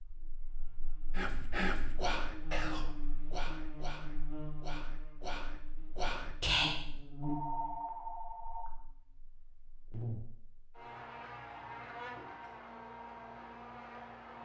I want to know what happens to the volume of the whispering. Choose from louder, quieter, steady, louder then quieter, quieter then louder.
quieter then louder.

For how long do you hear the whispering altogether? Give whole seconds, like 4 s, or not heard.
6 s.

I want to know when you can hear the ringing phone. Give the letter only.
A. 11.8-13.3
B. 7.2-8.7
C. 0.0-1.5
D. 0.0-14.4
B.